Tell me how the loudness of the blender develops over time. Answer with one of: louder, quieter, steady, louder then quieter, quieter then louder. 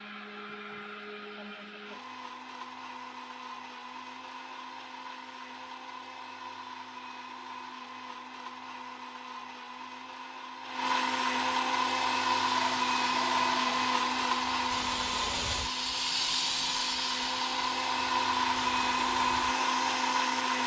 louder.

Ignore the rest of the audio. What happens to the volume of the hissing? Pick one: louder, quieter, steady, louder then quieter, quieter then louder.
louder then quieter.